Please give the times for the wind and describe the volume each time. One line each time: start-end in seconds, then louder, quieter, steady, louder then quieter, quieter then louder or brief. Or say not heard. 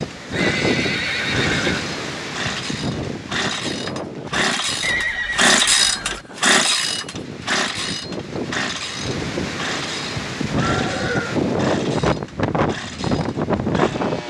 0.0-14.2 quieter then louder.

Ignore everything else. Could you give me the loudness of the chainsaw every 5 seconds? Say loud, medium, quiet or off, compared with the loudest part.
medium, loud, quiet.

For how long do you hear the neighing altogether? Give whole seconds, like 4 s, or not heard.
4 s.